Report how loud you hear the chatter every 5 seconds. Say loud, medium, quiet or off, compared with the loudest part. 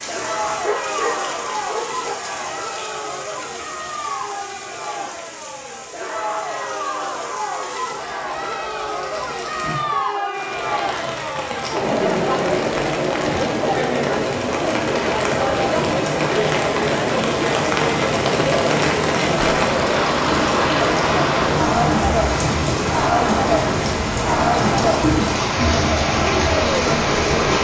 medium, medium, loud, loud, loud, loud.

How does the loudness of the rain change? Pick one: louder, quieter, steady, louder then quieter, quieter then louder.
louder.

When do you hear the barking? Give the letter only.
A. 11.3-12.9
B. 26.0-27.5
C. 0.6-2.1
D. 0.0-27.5
C.